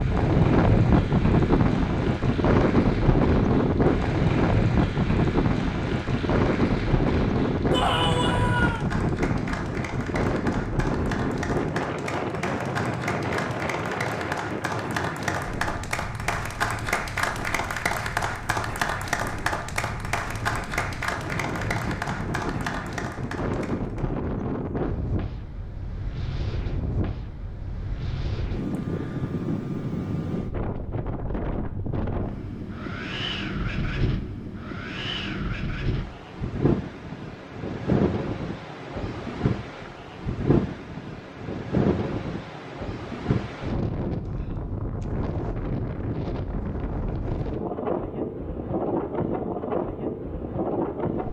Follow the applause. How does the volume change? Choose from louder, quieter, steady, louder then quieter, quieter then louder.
louder.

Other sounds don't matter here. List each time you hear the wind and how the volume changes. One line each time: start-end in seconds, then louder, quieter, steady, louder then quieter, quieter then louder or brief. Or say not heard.
0.0-51.2 quieter.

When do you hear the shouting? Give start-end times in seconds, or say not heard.
7.7-8.8.